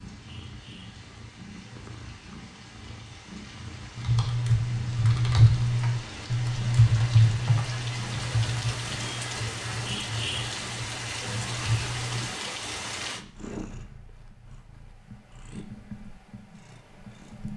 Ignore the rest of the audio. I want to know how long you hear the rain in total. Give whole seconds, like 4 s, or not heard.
13 s.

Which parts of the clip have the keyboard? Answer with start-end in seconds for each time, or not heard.
4.0-12.3.